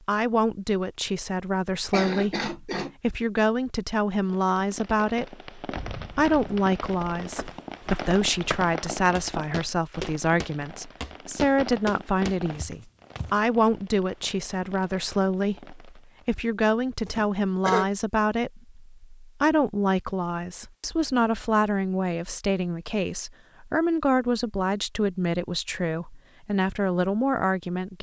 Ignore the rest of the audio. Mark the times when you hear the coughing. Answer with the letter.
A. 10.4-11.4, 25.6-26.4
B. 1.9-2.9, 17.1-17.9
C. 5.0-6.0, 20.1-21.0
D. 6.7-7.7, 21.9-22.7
B.